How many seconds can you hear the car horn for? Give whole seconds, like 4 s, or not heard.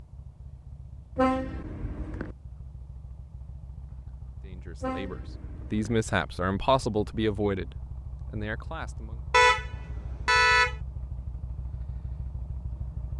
4 s.